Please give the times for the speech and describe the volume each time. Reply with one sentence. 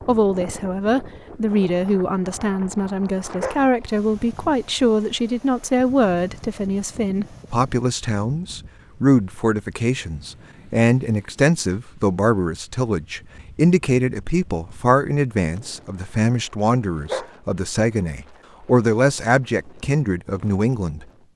You can hear the speech from 0.1 to 21.3 s, at a steady volume.